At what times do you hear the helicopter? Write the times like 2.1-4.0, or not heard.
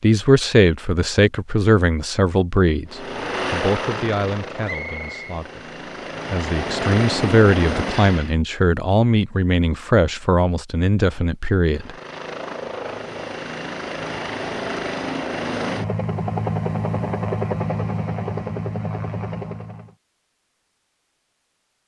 2.9-8.3, 11.8-19.9.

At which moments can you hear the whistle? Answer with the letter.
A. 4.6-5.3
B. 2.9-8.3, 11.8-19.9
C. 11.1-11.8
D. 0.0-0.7
A.